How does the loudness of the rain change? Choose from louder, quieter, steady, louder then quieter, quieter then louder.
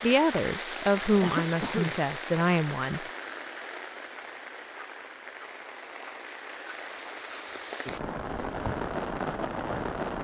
quieter then louder.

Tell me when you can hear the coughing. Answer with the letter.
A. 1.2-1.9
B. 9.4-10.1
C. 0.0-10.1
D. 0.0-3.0
A.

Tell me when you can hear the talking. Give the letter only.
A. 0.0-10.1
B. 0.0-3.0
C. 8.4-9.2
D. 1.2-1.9
B.